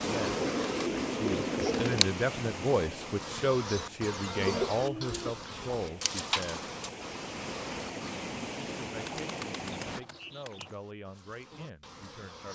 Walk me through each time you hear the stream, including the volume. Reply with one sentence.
You can hear the stream from 0.0 to 10.0 s, getting quieter then louder.